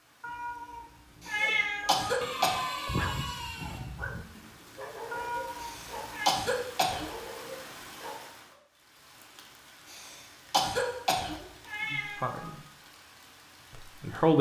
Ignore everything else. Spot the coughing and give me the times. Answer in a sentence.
You can hear the coughing from 1.2 to 2.6 s, from 5.6 to 7.2 s and from 9.9 to 11.4 s.